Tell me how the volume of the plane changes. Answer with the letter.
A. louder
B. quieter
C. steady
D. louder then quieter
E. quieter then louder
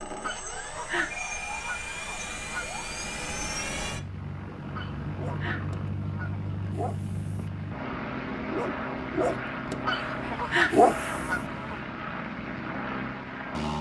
C.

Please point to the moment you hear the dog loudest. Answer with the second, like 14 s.
11 s.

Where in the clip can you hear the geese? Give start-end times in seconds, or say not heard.
0.2-2.8, 4.8-6.7, 9.8-11.8.